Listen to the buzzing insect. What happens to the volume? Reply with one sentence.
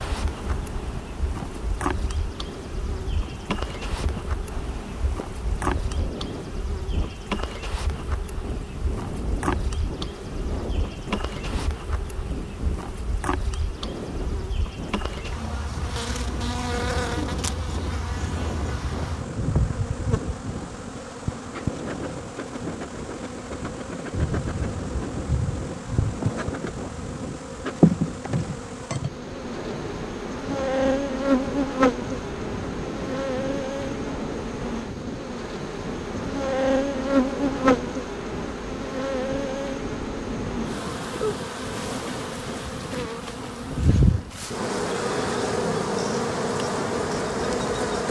The loudness of the buzzing insect goes up.